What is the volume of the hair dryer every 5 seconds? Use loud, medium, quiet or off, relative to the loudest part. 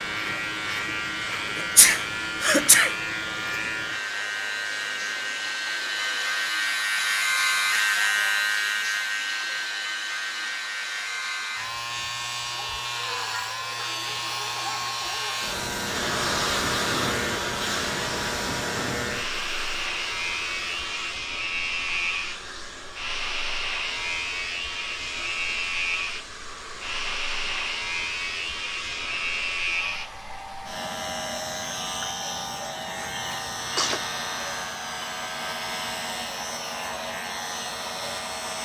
medium, medium, medium, loud, medium, medium, medium, medium.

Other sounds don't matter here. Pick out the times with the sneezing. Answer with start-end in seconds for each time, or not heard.
1.6-2.9, 33.0-34.1.